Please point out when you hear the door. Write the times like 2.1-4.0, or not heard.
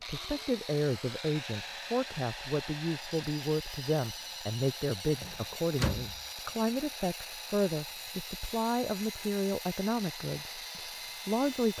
5.2-6.2.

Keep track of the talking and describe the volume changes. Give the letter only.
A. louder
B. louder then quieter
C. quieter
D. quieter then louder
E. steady
E.